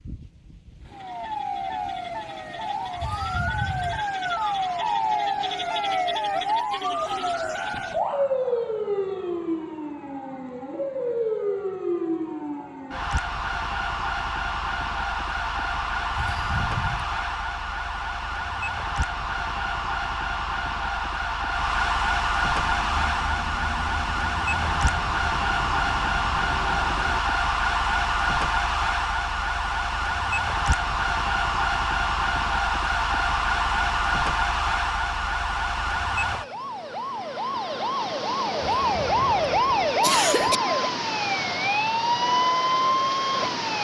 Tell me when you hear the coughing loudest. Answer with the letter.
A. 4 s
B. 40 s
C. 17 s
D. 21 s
B.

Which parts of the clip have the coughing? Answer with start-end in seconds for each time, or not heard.
3.0-4.0, 16.1-17.1, 38.9-40.6.